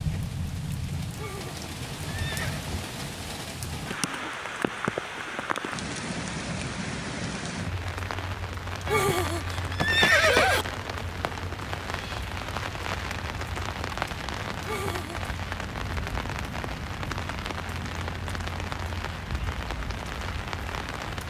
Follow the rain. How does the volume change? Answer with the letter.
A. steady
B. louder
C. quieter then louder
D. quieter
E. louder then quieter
A.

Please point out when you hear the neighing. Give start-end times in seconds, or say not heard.
1.1-2.6, 8.8-10.7, 14.6-15.3.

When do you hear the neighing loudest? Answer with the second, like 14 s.
10 s.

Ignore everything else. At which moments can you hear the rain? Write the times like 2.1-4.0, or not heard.
0.0-21.2.